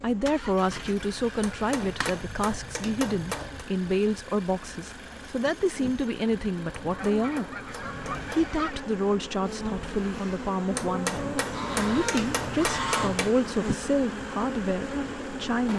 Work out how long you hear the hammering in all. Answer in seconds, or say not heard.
7 s.